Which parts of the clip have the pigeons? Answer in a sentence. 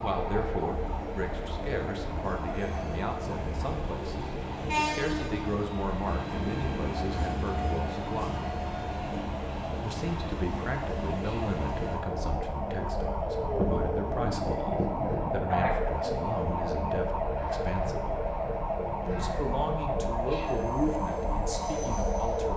The pigeons can't be heard in this clip.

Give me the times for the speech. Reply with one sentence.
You can hear the speech from 0.0 to 8.4 s, from 9.8 to 18.2 s and from 19.1 to 22.5 s.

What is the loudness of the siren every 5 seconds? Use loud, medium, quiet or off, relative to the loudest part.
medium, medium, loud, loud, loud.